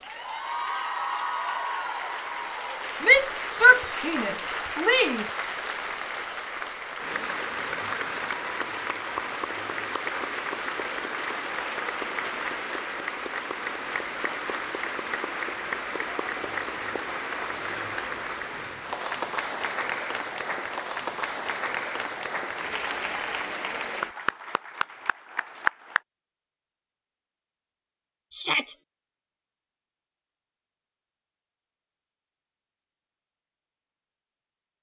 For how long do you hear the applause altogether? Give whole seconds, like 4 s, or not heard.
26 s.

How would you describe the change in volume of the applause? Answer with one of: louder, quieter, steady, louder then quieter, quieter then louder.
steady.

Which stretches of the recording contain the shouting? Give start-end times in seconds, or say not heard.
3.0-5.3, 28.3-28.8.